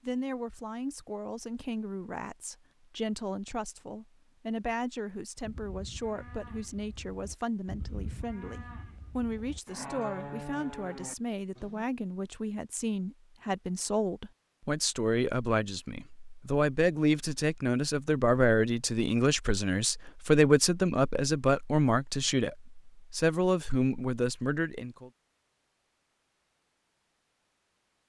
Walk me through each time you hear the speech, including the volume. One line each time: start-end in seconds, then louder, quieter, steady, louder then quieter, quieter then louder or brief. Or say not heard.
0.0-25.1 louder.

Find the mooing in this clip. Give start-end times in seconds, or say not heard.
5.4-11.8.